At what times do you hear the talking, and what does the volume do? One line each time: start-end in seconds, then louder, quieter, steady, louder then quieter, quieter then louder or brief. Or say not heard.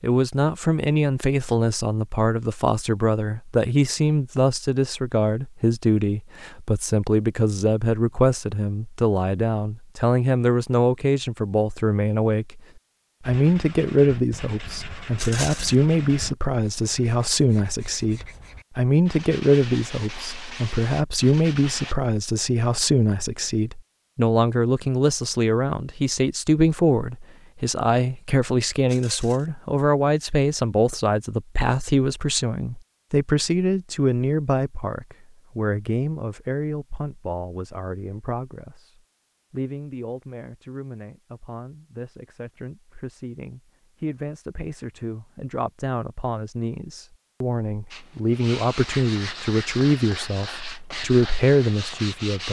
0.0-12.6 steady
13.2-52.4 quieter then louder.